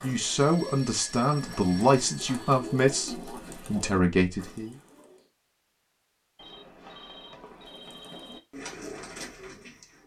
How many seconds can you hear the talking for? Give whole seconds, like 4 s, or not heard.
5 s.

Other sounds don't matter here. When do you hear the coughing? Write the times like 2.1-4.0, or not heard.
not heard.